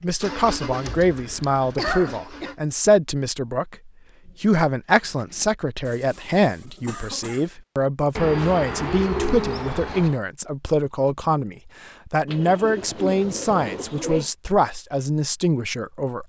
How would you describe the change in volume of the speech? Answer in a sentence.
The loudness of the speech stays about the same.